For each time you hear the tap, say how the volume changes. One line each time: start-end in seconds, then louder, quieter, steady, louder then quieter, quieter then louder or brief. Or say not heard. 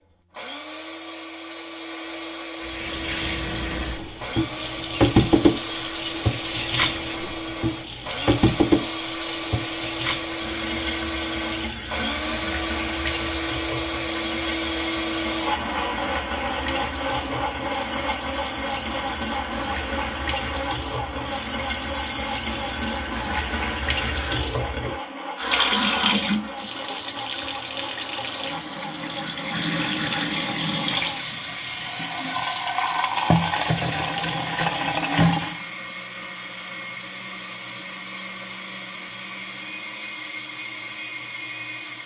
2.5-35.6 quieter then louder.